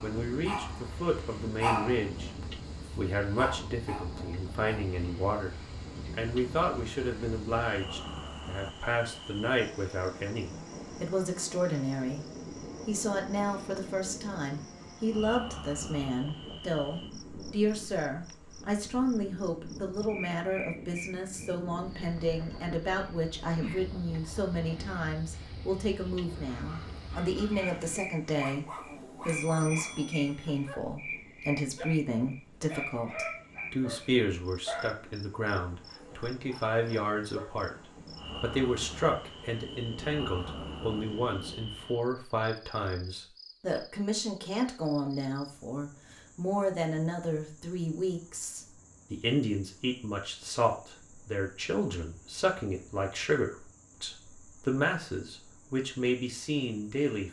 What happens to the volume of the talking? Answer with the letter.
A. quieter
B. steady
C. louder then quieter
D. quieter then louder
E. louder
B.